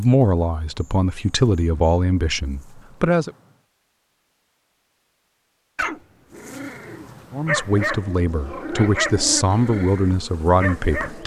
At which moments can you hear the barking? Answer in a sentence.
The barking can be heard from 5.8 to 11.2 s.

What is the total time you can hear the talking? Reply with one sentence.
The talking can be heard for 7 seconds in total.